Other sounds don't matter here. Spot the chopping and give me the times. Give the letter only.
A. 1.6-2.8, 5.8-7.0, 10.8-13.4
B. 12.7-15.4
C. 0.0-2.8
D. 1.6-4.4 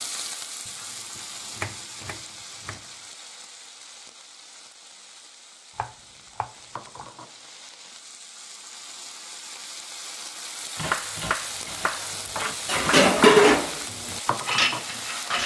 A.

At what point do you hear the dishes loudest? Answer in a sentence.
The loudest moment of the dishes is at 13 seconds.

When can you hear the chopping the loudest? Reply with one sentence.
The volume of the chopping peaks at 11 seconds.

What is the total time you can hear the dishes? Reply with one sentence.
The dishes can be heard for 3 seconds in total.